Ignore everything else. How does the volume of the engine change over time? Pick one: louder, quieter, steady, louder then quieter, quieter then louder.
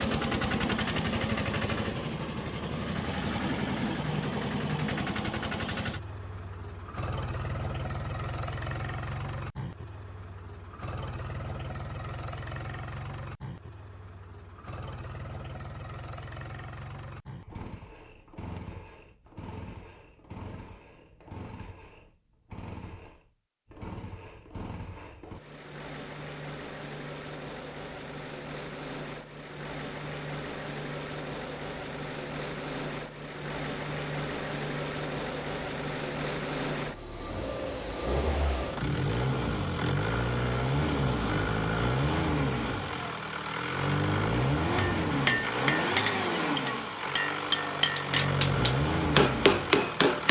quieter then louder.